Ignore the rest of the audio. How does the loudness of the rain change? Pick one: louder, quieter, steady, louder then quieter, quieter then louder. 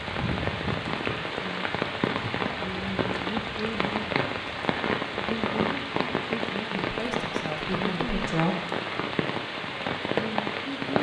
steady.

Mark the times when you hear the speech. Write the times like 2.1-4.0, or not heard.
6.8-8.6.